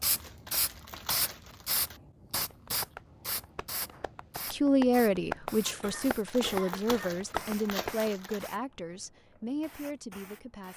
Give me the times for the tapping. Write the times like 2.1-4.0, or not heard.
2.5-8.0.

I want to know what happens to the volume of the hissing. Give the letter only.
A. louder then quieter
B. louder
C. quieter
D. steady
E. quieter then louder
C.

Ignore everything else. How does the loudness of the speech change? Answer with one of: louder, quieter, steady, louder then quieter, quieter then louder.
quieter.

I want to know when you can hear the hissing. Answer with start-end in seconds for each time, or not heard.
0.0-10.7.